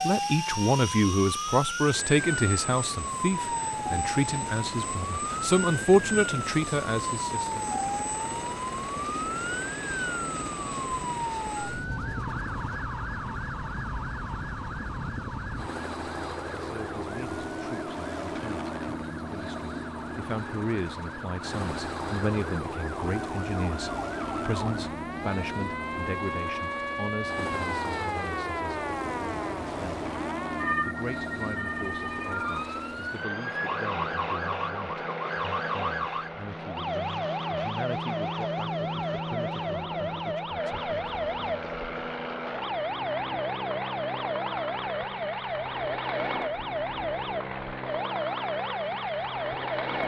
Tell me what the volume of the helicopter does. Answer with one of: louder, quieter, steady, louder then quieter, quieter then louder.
steady.